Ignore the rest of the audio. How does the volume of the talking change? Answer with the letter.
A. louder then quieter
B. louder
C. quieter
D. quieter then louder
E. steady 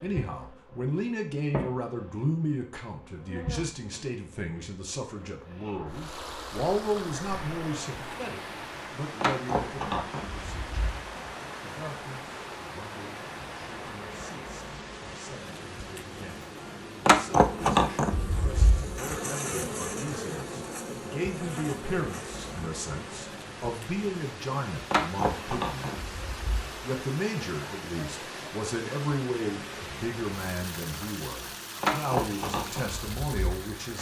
D.